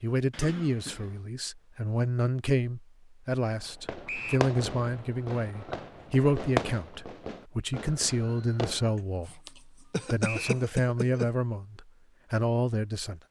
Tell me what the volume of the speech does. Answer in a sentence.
The volume of the speech stays about the same.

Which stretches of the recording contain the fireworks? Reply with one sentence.
The fireworks can be heard from 3.6 to 8.9 s.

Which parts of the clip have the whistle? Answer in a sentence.
You can hear the whistle from 4.0 to 4.5 s and from 10.2 to 10.7 s.